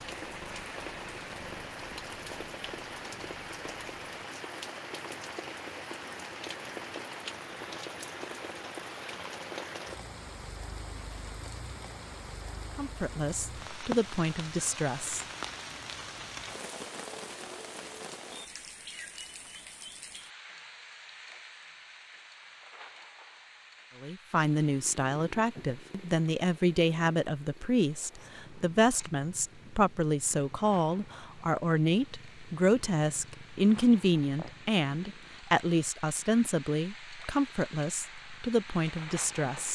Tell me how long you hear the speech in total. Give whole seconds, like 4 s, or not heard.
18 s.